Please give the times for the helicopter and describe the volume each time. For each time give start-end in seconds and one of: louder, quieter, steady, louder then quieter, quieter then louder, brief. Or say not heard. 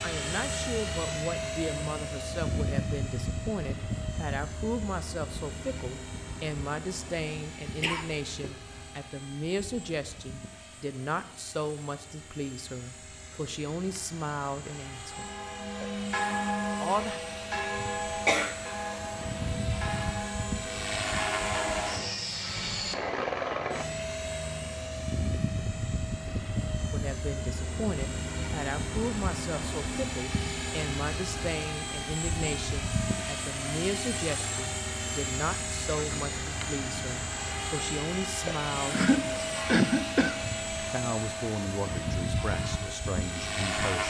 0.0-44.0 quieter then louder.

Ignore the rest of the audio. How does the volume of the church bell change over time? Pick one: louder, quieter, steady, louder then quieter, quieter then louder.
quieter.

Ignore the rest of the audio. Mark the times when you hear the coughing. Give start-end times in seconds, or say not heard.
7.8-8.6, 18.2-18.7, 38.9-40.4.